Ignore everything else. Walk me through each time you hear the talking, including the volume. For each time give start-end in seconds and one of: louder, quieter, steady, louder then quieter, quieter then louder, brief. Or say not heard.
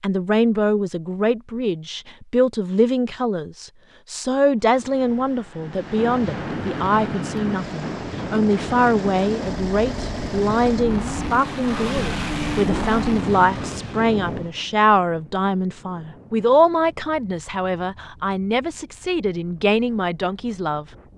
0.0-20.9 steady.